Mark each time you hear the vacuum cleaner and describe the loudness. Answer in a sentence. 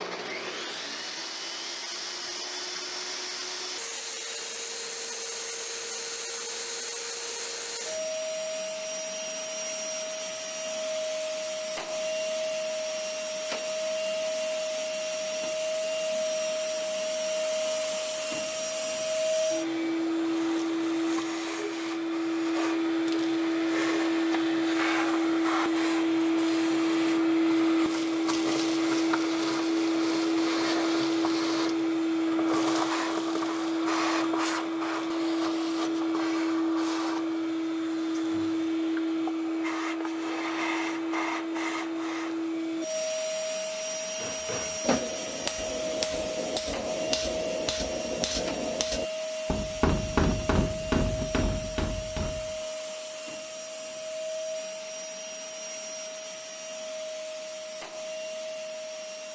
You can hear the vacuum cleaner from 0.0 to 59.2 s, getting louder then quieter.